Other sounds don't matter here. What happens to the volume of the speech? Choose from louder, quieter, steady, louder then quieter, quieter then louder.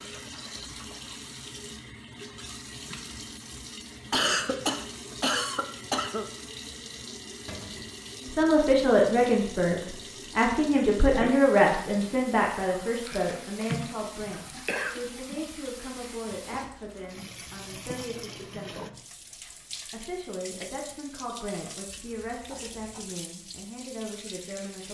quieter.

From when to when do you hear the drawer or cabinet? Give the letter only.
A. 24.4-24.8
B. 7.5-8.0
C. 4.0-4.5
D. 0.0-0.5
B.